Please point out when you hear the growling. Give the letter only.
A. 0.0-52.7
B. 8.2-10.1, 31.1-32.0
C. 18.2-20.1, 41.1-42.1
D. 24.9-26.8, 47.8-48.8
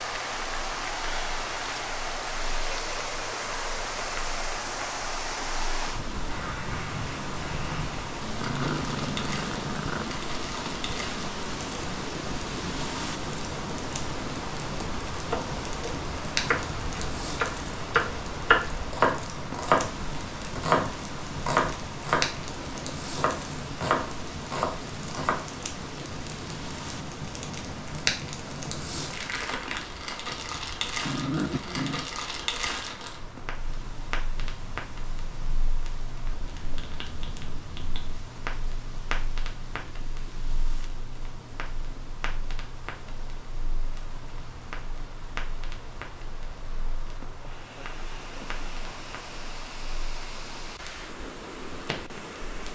B.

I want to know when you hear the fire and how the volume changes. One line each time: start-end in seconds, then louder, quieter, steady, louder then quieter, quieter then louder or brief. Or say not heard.
0.0-52.7 louder then quieter.